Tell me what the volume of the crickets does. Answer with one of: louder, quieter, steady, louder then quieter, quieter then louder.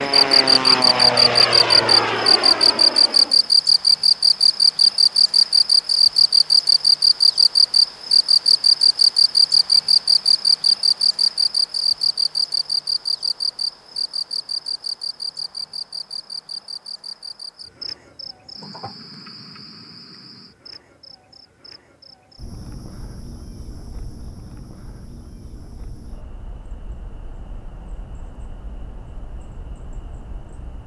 quieter.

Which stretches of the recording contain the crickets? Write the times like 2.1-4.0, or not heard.
0.0-30.8.